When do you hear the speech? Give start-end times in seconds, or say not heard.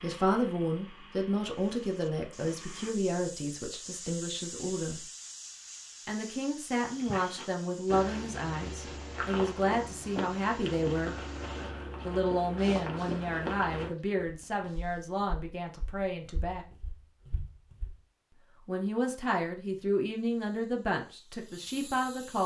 0.0-5.0, 6.0-11.2, 12.1-16.6, 18.6-22.4.